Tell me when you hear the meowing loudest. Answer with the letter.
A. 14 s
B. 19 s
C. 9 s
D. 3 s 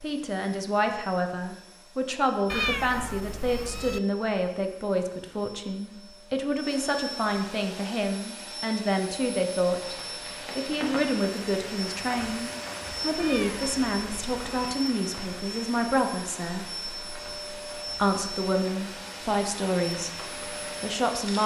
D.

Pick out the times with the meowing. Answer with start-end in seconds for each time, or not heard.
2.5-4.0, 13.2-14.7.